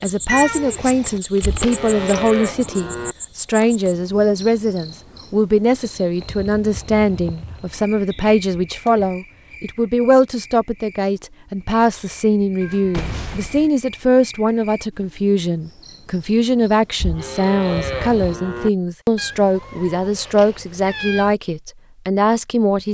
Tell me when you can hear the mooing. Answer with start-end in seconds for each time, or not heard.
1.4-3.1, 17.0-18.7.